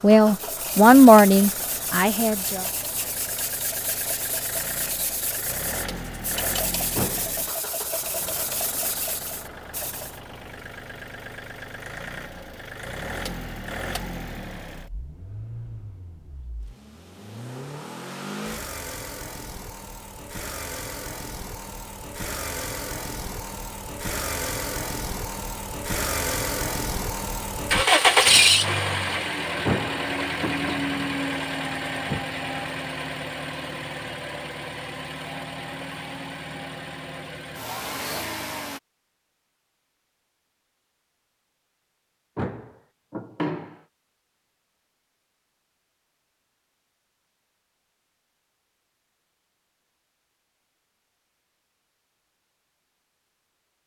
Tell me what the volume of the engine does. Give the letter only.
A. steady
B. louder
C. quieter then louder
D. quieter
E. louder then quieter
E.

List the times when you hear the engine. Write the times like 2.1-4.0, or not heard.
0.0-38.8.